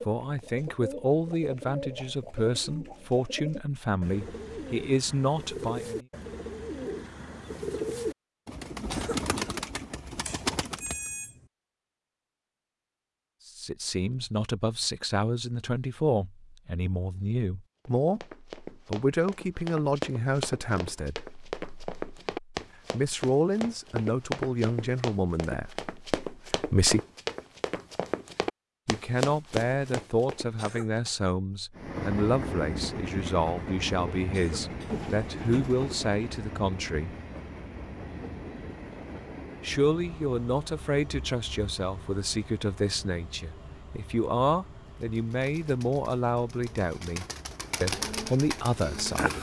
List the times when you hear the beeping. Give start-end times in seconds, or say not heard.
10.2-11.5.